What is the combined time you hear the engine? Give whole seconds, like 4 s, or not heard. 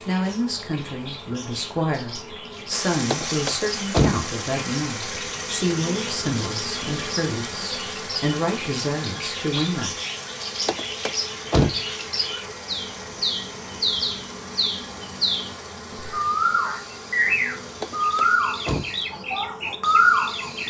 16 s.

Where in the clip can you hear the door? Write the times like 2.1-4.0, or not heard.
3.1-4.2, 10.7-11.8, 17.8-18.9.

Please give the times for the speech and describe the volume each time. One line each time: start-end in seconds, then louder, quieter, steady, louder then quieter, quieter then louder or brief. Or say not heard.
0.0-9.9 steady.